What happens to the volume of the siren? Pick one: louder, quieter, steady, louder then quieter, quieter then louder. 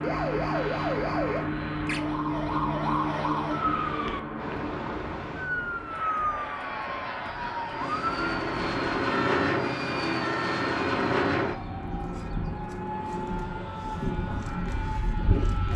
quieter.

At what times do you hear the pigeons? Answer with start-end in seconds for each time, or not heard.
not heard.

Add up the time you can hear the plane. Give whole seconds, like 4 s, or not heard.
16 s.